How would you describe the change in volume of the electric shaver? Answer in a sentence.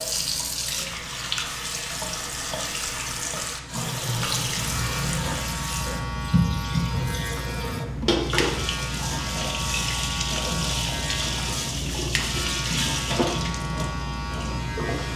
The volume of the electric shaver goes up.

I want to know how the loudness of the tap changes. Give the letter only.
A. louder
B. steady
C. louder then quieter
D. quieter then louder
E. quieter
B.